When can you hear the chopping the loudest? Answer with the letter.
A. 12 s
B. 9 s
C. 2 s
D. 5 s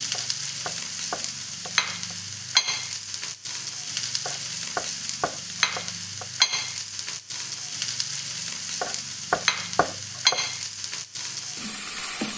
B.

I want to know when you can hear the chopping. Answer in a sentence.
The chopping can be heard from 0.1 to 2.1 s, from 4.2 to 6.2 s and from 8.8 to 10.5 s.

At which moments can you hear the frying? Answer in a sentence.
The frying can be heard from 0.0 to 12.3 s.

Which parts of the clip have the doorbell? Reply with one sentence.
You can't hear the doorbell here.